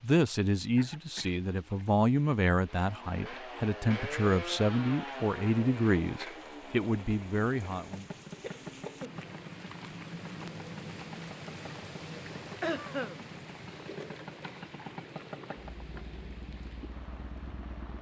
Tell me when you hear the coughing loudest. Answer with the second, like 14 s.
13 s.